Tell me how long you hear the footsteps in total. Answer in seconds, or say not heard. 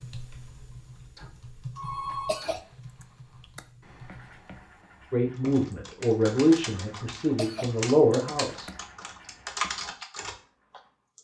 not heard.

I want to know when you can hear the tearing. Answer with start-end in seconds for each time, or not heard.
not heard.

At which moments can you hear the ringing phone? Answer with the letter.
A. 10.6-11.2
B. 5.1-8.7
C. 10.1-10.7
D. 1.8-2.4
D.